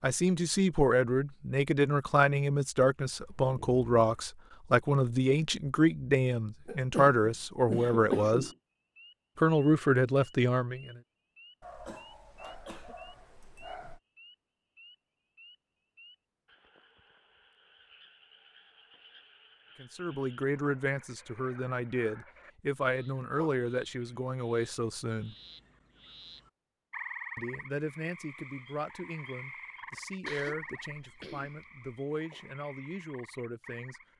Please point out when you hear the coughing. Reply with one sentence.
The coughing can be heard from 6.7 to 8.5 s, from 11.8 to 12.9 s and from 30.2 to 31.9 s.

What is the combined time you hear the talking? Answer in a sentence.
The talking can be heard for 22 seconds in total.